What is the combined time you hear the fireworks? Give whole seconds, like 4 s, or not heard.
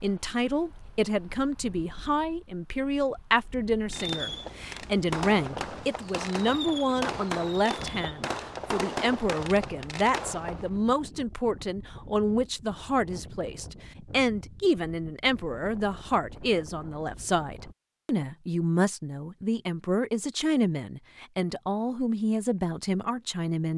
7 s.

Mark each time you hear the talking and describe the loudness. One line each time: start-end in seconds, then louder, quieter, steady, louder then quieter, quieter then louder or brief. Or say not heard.
0.0-23.7 steady.